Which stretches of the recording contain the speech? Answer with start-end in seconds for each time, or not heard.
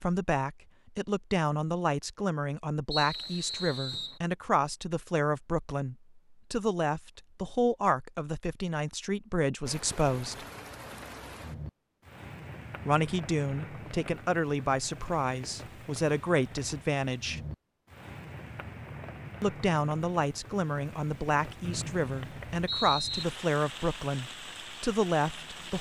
0.0-10.4, 12.8-17.4, 19.4-25.7.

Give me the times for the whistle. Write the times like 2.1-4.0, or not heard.
2.9-4.2, 21.6-23.2.